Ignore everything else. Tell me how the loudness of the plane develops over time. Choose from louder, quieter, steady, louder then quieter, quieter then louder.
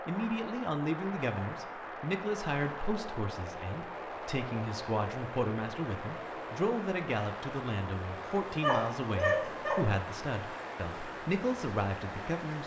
steady.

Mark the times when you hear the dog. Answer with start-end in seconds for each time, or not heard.
8.2-9.8.